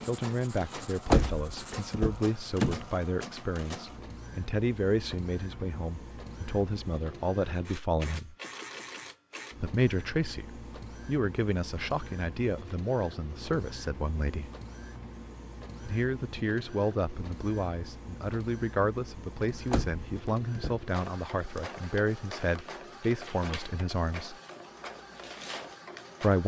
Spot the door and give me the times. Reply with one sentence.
You can hear the door from 1.1 to 2.9 s and from 19.7 to 20.8 s.